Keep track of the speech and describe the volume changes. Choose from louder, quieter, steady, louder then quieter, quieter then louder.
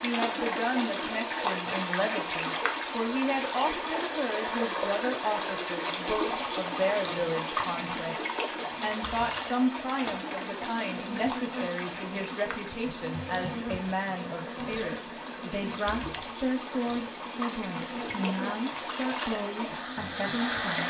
steady.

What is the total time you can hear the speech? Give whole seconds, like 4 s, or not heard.
21 s.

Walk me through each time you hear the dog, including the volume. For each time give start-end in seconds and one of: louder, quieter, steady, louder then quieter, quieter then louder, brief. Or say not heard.
not heard.